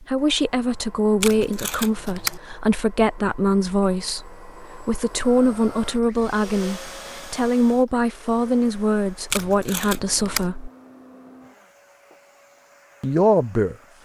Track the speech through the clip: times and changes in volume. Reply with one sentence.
The speech can be heard from 0.0 to 10.7 s, at a steady volume; and briefly from 13.0 to 13.8 s.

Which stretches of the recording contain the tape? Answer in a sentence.
You can hear the tape from 1.2 to 2.4 s and from 9.3 to 10.5 s.